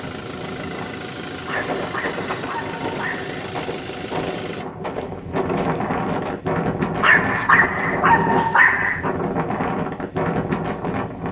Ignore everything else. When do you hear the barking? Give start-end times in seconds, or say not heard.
1.4-3.4, 7.0-9.2.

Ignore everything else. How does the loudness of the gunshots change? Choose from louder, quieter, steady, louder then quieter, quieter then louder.
steady.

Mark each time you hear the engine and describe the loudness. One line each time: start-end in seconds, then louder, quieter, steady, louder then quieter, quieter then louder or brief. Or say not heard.
0.0-4.7 steady.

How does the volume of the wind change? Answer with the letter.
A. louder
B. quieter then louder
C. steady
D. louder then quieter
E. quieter
A.